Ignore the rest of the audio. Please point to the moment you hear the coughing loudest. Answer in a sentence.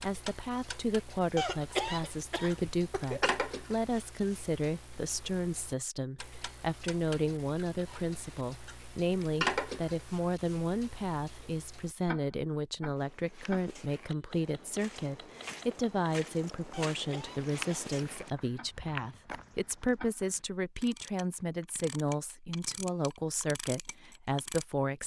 The volume of the coughing peaks at 2 seconds.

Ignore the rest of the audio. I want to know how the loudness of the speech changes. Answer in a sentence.
The loudness of the speech stays about the same.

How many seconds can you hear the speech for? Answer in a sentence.
You can hear the speech for 25 seconds altogether.